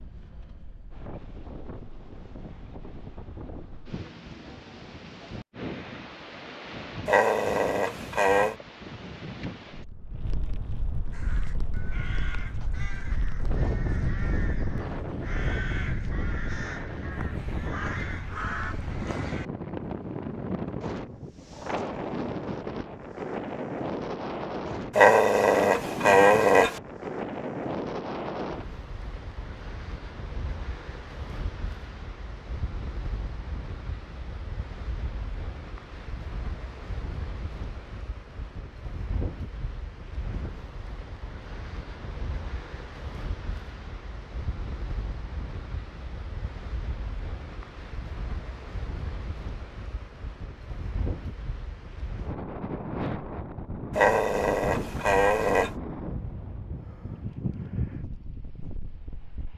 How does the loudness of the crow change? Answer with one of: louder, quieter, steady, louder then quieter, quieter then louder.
louder.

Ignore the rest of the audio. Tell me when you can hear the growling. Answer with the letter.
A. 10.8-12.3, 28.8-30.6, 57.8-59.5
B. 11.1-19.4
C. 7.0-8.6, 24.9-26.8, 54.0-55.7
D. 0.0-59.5
C.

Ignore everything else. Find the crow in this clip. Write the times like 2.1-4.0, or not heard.
11.1-19.4.